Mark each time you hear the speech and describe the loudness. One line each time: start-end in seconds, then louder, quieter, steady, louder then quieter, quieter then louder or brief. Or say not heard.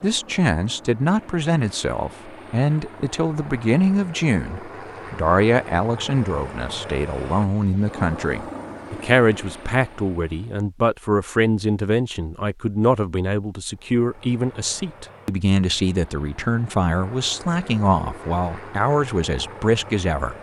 0.0-20.3 steady.